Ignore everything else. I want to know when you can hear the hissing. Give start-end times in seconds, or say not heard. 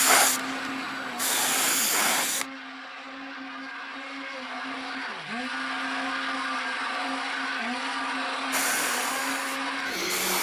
0.0-2.5, 8.5-10.3.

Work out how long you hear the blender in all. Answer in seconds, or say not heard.
10 s.